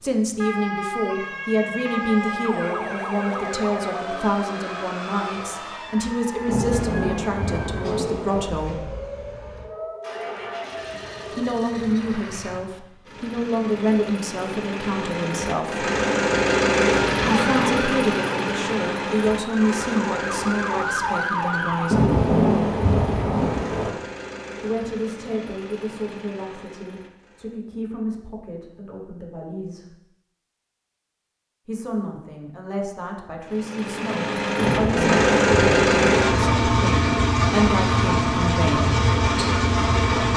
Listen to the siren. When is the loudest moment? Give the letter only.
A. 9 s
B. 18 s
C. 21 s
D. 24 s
C.